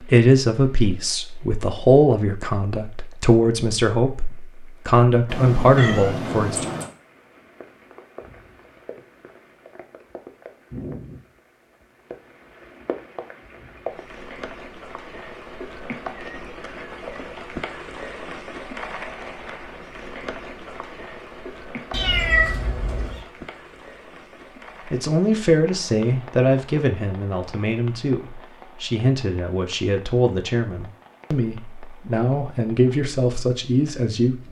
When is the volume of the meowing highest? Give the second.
22 s.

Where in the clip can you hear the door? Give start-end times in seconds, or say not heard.
not heard.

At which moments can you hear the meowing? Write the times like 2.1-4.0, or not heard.
5.2-6.9, 21.9-23.2.